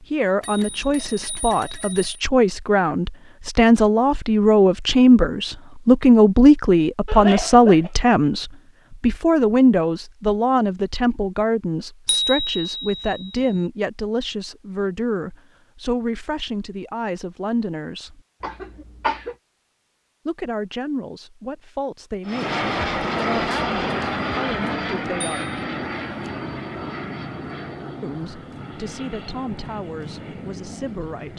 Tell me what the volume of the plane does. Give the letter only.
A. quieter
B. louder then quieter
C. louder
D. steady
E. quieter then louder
A.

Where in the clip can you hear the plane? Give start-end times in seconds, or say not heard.
22.2-31.3.